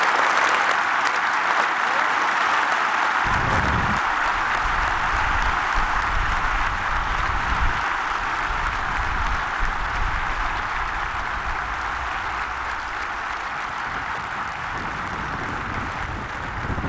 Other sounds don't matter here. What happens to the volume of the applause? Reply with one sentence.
The volume of the applause goes down.